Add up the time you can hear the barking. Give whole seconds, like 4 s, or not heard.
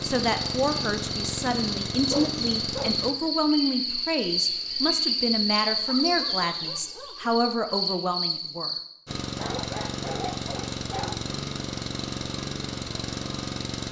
4 s.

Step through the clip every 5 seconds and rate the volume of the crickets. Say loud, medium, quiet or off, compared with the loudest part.
loud, loud, off.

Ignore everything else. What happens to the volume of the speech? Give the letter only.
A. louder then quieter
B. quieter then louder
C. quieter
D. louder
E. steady
E.